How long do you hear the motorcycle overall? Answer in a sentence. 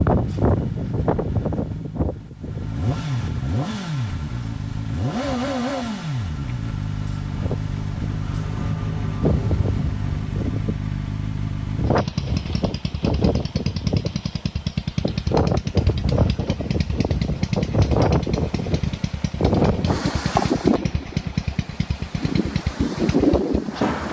The motorcycle can be heard for 24 seconds in total.